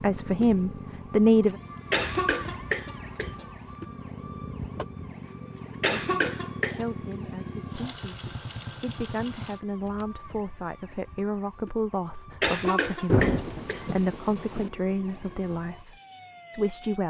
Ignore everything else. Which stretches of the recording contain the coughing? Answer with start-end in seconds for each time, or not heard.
1.9-3.5, 5.8-6.8, 12.4-13.9.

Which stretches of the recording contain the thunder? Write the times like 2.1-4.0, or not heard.
13.1-14.7.